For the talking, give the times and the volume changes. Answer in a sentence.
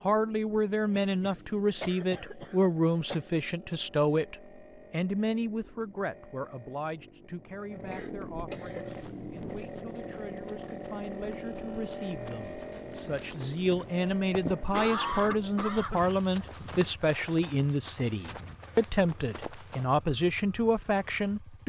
You can hear the talking from 0.0 to 21.6 s, getting quieter then louder.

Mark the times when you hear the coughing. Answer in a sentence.
The coughing can be heard from 0.9 to 3.2 s, from 7.9 to 8.8 s and from 14.7 to 16.1 s.